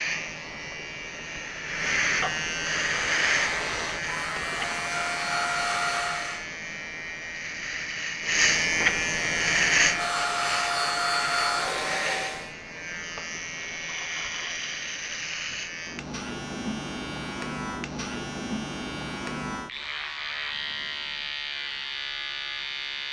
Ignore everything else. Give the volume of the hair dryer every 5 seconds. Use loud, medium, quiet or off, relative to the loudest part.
medium, loud, loud, off, off.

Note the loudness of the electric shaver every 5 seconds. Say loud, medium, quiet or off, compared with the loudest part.
loud, loud, medium, medium, medium.